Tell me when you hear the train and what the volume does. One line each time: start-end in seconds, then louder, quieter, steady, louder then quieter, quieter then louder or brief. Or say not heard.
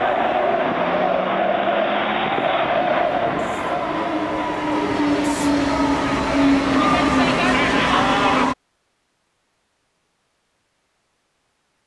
0.0-8.6 louder.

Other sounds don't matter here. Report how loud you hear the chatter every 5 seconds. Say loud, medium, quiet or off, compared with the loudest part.
loud, loud, off.